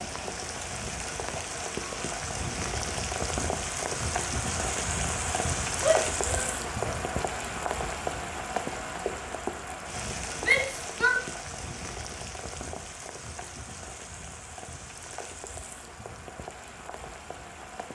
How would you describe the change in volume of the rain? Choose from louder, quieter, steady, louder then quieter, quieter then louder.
quieter.